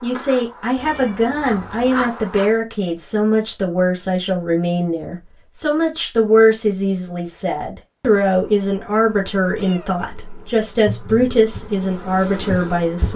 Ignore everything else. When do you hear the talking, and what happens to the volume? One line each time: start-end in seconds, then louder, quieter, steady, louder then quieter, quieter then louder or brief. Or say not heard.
0.0-13.1 steady.